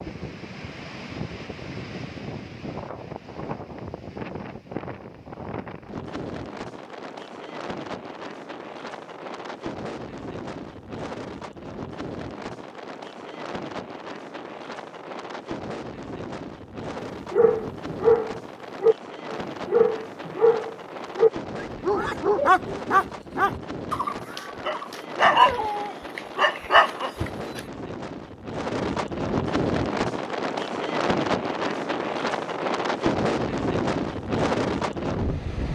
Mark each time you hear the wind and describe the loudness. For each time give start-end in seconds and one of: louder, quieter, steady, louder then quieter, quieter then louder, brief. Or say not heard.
0.0-35.7 louder.